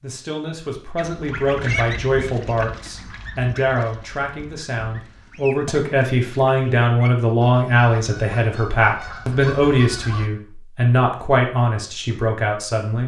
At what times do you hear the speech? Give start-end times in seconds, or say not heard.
0.0-13.0.